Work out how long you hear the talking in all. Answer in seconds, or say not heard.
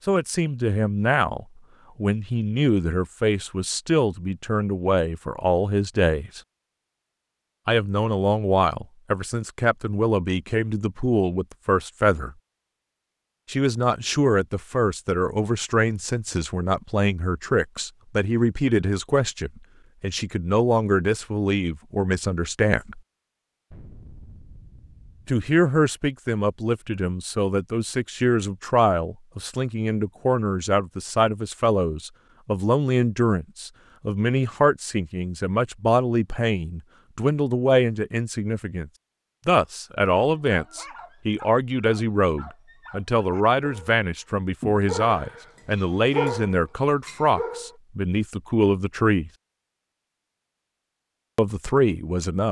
46 s.